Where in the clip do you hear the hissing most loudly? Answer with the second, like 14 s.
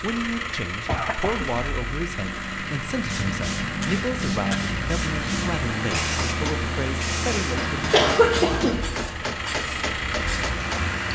4 s.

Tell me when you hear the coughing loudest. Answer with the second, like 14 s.
8 s.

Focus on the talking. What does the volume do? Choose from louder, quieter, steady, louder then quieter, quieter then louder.
steady.